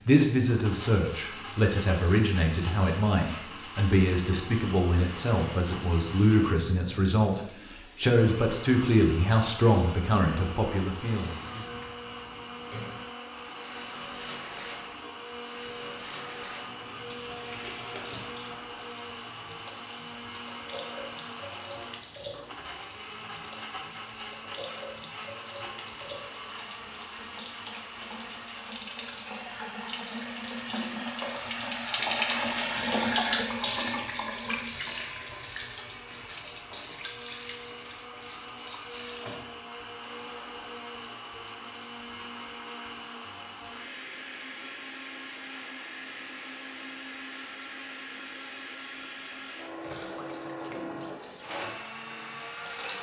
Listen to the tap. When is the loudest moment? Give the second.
33 s.